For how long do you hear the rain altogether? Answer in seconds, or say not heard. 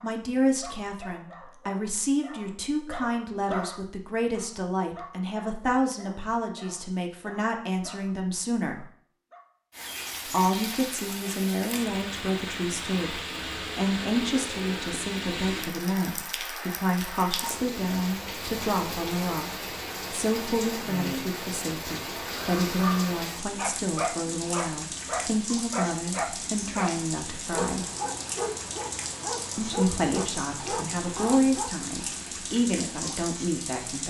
24 s.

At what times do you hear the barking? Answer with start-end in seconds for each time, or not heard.
0.0-9.4, 22.4-31.8.